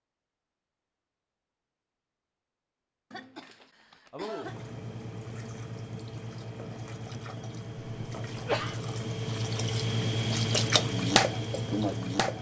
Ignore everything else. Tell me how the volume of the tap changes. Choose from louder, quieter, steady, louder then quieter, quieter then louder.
louder.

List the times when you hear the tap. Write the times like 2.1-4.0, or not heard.
4.4-12.3.